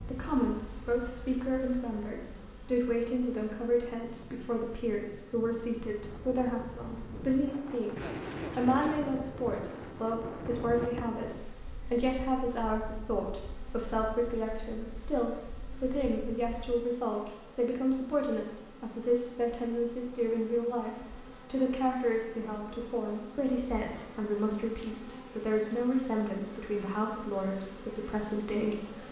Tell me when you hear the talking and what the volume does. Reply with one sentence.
The talking can be heard from 0.0 to 29.0 s, at a steady volume.